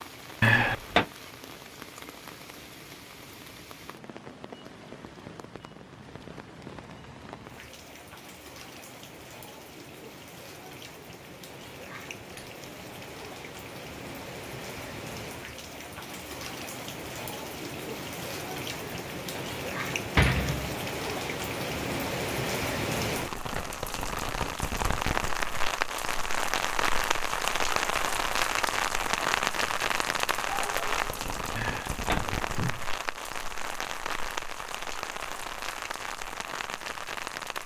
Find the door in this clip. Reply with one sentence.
You can hear the door from 0.4 to 1.1 s, from 18.8 to 20.8 s and from 31.6 to 32.8 s.